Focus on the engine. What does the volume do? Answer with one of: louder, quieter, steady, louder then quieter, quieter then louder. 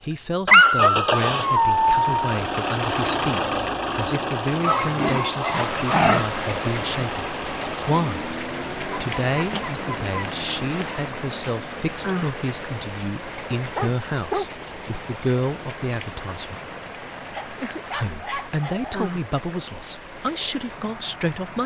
quieter.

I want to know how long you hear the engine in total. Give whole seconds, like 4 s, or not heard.
13 s.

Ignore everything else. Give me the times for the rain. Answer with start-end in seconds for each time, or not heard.
5.5-21.6.